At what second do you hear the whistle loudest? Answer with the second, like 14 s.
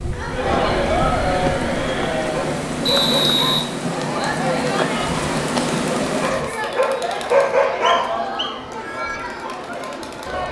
3 s.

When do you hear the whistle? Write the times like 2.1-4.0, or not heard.
2.9-3.6, 7.8-8.6.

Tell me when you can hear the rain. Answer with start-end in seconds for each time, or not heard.
0.0-6.3.